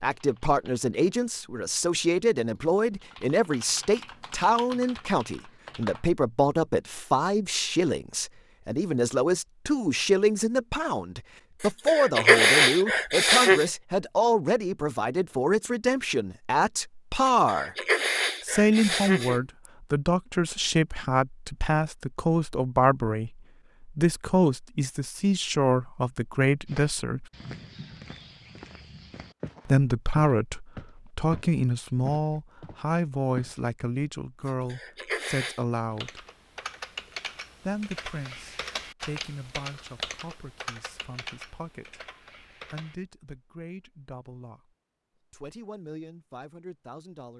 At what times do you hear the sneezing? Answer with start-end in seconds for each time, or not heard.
11.6-13.7, 17.2-19.4, 34.5-35.6.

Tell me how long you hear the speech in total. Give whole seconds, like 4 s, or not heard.
42 s.